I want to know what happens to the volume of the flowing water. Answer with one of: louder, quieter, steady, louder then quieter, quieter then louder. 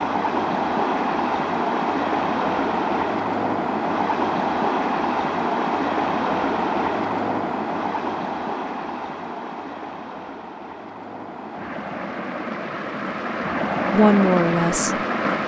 quieter then louder.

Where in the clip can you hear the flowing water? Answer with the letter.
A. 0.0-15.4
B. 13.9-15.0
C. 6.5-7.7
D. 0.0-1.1
A.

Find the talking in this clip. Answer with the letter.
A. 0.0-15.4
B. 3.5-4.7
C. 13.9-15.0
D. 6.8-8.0
C.